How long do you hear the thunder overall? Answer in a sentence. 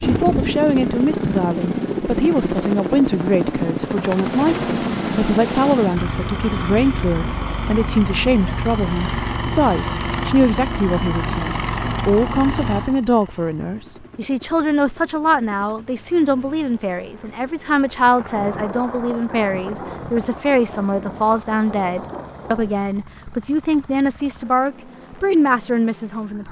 You can hear the thunder for 6 seconds altogether.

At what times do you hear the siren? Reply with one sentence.
You can't hear the siren here.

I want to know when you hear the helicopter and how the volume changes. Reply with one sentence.
The helicopter can be heard from 0.0 to 26.4 s, getting quieter.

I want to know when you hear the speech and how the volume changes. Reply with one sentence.
The speech can be heard from 0.0 to 26.4 s, at a steady volume.